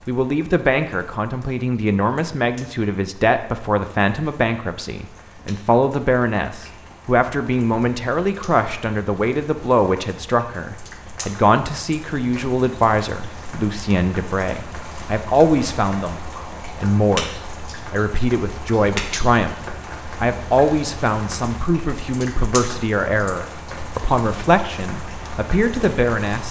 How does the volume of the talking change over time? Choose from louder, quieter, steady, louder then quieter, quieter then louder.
steady.